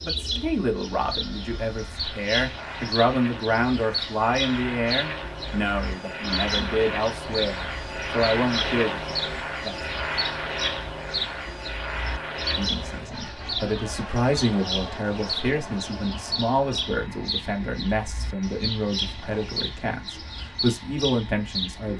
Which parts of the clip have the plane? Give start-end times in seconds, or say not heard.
0.0-21.9.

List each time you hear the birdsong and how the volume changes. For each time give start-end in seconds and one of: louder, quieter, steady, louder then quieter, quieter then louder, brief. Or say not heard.
0.0-21.9 steady.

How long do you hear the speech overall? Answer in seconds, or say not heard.
19 s.